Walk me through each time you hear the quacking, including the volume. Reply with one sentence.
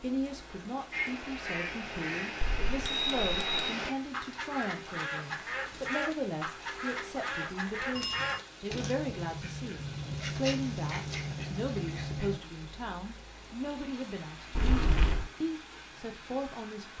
The quacking can be heard from 0.9 to 12.4 s, at a steady volume.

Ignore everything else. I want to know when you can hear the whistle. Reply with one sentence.
You can't hear the whistle here.